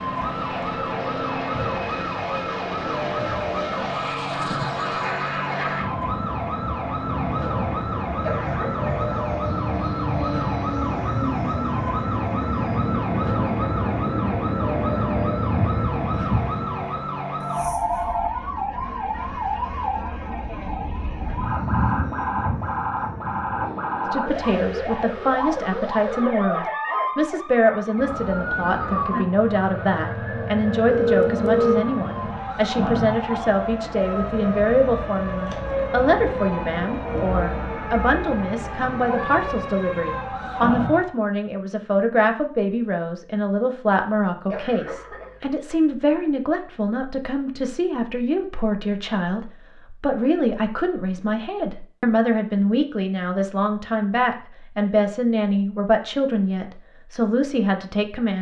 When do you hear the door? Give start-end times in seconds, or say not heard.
not heard.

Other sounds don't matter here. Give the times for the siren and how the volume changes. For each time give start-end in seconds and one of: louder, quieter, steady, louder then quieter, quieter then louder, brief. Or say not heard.
0.0-41.1 steady.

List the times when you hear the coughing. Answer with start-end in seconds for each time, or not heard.
8.2-8.9, 44.5-45.4.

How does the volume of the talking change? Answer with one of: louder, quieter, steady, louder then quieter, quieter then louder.
steady.